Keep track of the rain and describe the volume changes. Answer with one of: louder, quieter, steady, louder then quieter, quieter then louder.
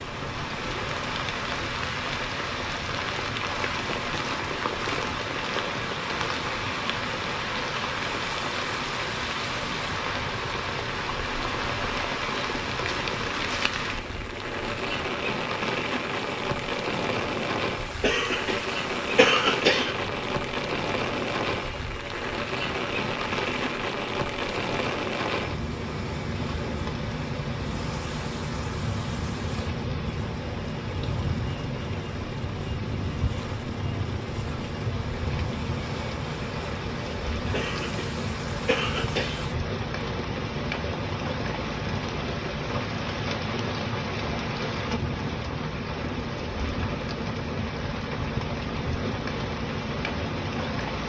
steady.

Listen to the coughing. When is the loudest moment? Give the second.
19 s.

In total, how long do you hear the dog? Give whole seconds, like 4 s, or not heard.
not heard.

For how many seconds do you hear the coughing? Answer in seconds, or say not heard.
4 s.